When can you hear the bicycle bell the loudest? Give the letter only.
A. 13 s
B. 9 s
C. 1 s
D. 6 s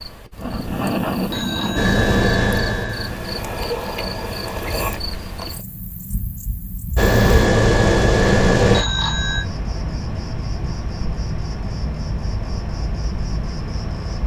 B.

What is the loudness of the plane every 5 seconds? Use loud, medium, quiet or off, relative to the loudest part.
medium, loud, off.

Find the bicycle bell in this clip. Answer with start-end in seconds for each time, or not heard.
1.3-3.1, 8.7-9.4.